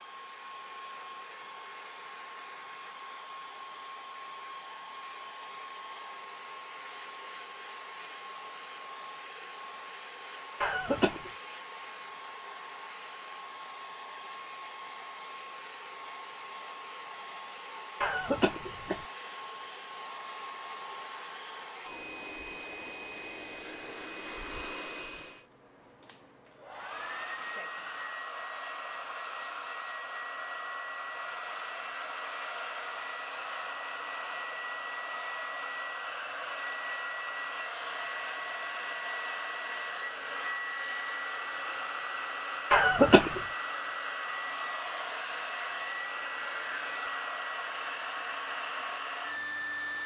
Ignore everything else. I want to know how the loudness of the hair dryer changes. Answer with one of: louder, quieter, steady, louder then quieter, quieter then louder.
louder.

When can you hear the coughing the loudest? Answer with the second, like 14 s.
43 s.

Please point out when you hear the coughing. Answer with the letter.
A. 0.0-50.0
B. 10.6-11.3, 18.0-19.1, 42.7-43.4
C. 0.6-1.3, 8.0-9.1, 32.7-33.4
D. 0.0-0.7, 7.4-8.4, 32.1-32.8
B.